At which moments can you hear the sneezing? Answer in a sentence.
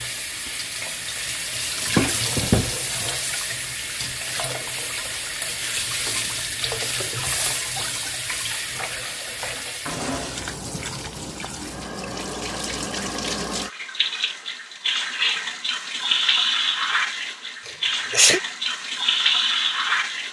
You can hear the sneezing from 17.6 to 18.4 s.